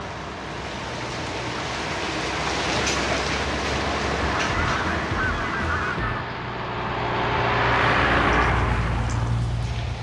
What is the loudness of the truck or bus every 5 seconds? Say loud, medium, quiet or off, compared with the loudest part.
medium, loud.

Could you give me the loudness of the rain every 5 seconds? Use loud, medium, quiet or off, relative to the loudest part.
loud, medium.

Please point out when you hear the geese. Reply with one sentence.
You can hear the geese from 4.4 to 6.2 s.